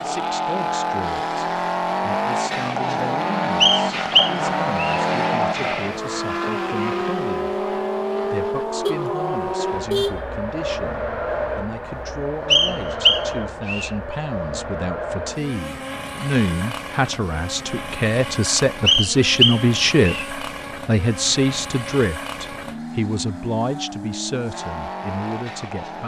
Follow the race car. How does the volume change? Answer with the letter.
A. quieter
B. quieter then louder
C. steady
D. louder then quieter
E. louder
A.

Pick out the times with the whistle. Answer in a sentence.
The whistle can be heard from 3.6 to 5.0 s, from 12.5 to 13.9 s and from 18.9 to 20.2 s.